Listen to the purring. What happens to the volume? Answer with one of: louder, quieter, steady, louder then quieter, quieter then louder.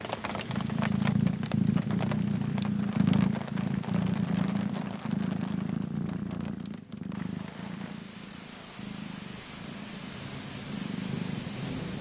quieter.